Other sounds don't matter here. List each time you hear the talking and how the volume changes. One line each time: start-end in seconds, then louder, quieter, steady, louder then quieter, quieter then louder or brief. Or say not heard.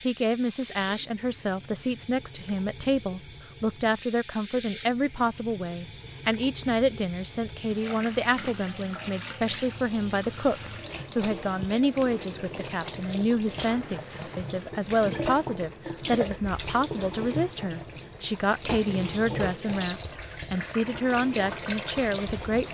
0.0-22.7 steady.